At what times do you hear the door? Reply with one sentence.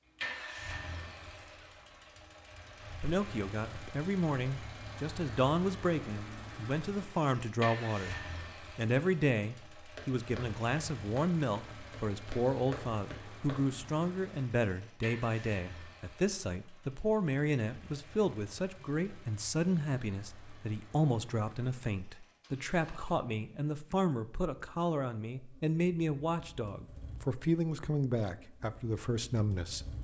The door can't be heard in this clip.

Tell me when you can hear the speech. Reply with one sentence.
The speech can be heard from 3.0 to 29.9 s.